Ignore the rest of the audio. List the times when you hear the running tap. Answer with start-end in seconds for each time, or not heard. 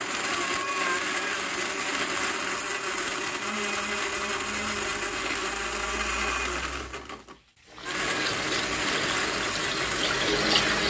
7.7-10.8.